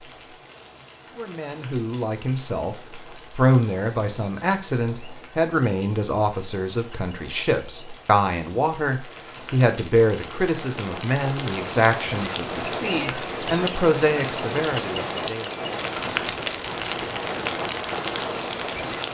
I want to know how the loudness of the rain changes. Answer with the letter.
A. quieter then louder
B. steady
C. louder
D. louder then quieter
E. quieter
C.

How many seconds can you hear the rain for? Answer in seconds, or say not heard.
19 s.